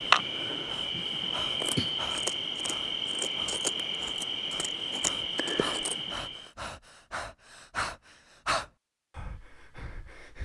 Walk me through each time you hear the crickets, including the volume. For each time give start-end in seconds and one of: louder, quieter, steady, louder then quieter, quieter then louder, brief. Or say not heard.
0.0-6.5 steady.